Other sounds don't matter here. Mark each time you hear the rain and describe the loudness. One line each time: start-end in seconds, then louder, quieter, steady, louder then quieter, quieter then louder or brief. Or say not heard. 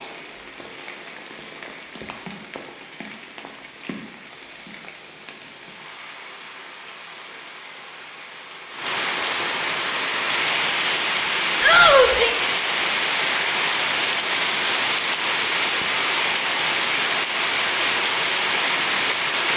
0.0-19.5 louder.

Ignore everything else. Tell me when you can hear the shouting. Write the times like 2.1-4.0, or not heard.
11.6-12.3.